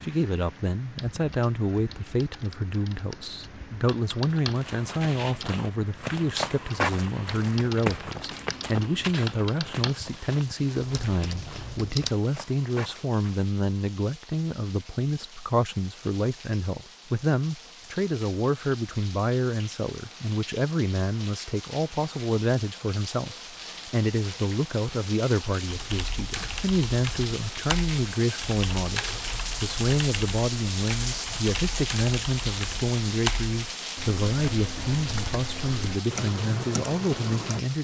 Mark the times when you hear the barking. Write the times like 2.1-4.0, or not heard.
not heard.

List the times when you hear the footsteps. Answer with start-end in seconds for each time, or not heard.
4.3-13.5.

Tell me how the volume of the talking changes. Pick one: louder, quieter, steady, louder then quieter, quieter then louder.
steady.